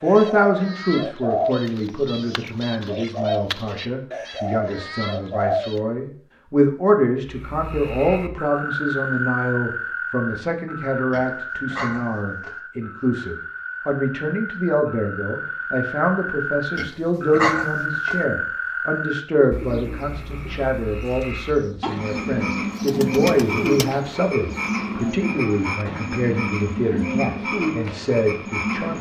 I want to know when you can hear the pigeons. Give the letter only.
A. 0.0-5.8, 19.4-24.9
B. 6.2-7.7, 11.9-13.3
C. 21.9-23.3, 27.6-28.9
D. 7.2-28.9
A.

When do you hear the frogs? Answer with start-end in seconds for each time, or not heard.
7.2-28.9.